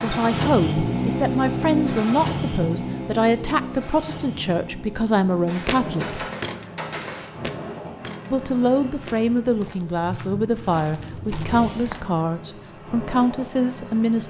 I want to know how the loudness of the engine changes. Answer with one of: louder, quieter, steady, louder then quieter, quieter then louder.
quieter.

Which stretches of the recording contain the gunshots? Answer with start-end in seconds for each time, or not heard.
5.5-7.3.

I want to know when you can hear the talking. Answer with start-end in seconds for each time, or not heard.
0.0-6.2, 8.3-14.2.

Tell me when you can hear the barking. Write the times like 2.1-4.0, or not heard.
not heard.